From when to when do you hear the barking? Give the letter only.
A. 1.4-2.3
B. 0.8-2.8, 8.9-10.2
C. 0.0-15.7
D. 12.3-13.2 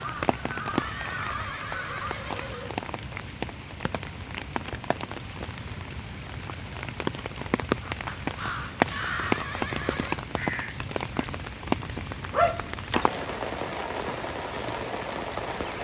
D.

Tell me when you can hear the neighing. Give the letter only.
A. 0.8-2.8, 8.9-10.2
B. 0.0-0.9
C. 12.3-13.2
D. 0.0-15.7
A.